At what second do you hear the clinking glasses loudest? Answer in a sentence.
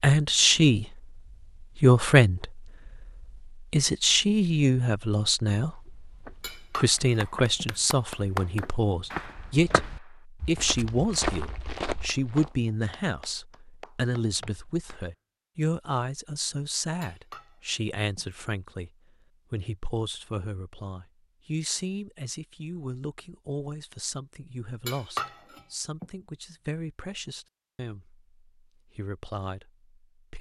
The volume of the clinking glasses peaks at 25 seconds.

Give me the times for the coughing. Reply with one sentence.
The coughing can't be heard in this clip.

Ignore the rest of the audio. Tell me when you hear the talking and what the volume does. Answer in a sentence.
The talking can be heard from 0.0 to 18.9 s, getting quieter; and from 19.5 to 30.3 s, getting quieter.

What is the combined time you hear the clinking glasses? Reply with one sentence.
You can hear the clinking glasses for 4 seconds altogether.